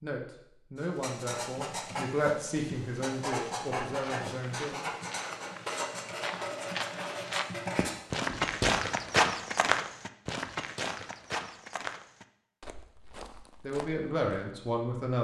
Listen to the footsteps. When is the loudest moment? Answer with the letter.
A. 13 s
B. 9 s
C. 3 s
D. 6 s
B.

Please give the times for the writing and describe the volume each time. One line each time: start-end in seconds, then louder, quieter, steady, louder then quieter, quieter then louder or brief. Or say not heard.
0.8-8.8 steady.